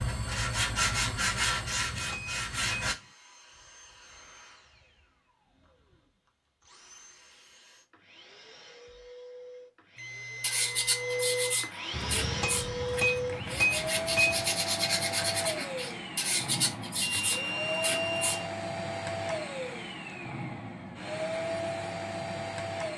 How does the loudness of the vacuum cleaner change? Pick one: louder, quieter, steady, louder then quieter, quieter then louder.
louder.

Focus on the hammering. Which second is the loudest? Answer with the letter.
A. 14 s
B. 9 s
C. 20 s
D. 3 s
A.